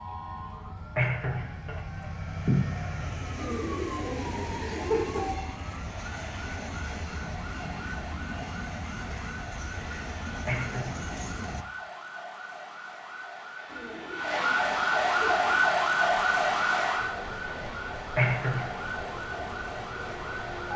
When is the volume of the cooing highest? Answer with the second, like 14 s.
5 s.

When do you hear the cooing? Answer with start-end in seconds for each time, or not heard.
3.4-5.3, 13.7-15.7.